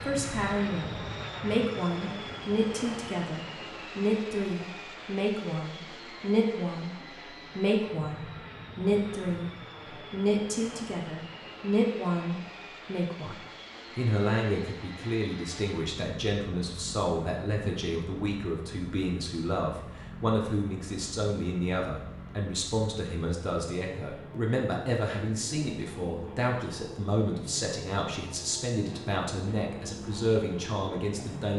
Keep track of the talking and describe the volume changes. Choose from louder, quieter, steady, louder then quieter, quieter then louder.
steady.